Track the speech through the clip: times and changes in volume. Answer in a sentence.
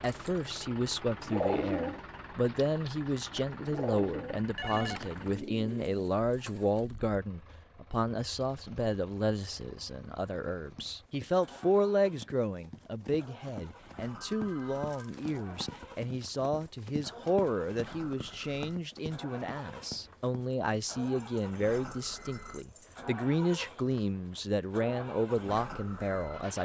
The speech can be heard from 0.0 to 26.6 s, at a steady volume.